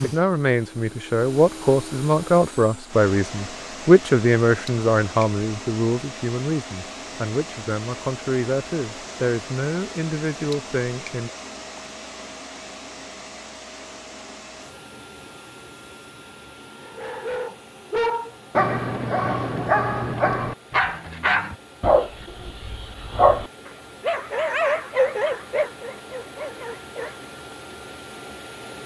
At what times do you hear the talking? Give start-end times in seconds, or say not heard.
0.0-11.3.